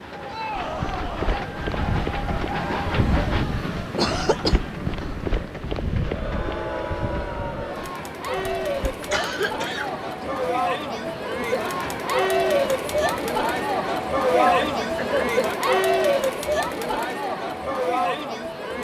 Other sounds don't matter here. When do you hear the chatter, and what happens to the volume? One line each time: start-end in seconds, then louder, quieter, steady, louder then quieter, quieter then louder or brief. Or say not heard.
0.1-18.7 louder.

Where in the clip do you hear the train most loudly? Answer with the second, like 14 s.
3 s.